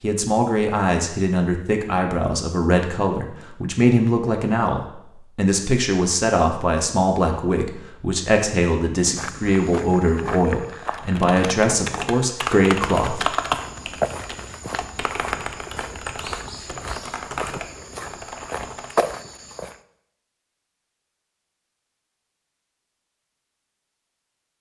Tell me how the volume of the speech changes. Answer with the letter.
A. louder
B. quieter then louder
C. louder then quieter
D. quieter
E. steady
E.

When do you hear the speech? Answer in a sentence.
The speech can be heard from 0.0 to 13.2 s.